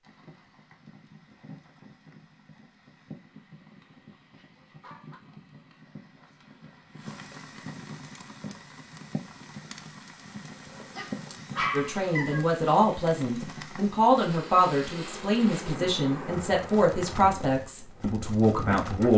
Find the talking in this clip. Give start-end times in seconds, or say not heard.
11.7-19.1.